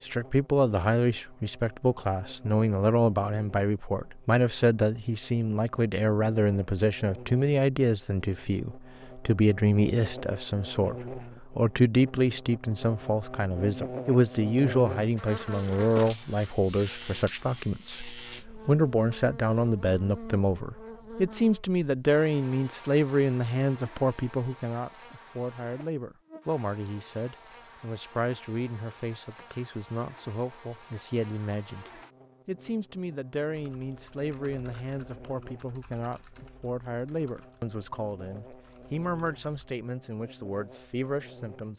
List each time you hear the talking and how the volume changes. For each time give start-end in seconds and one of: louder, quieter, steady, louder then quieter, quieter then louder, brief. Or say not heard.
0.1-41.7 quieter.